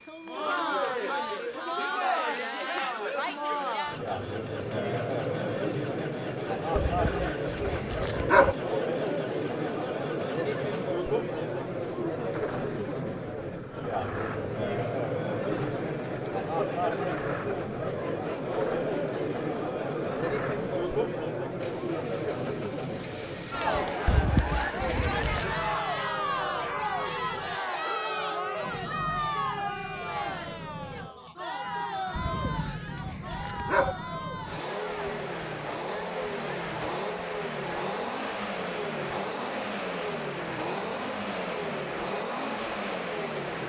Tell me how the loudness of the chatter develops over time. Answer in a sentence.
The volume of the chatter goes down.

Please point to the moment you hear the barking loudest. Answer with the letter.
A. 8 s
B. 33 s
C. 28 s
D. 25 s
A.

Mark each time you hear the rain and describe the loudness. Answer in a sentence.
You can't hear the rain here.